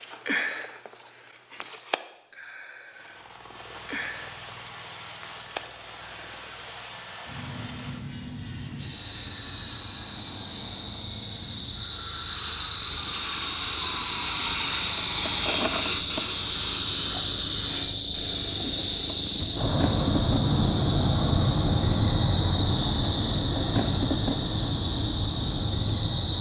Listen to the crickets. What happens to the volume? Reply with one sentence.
The loudness of the crickets goes down, then up.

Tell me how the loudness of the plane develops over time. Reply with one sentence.
The loudness of the plane goes up.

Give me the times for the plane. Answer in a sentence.
The plane can be heard from 2.9 to 26.3 s.